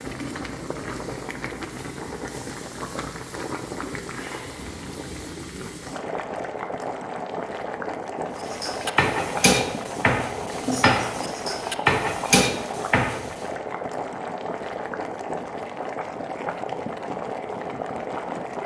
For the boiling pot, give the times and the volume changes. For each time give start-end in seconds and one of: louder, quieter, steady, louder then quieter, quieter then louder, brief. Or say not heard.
0.0-18.6 steady.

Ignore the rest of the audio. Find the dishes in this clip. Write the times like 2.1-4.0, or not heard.
8.4-13.3.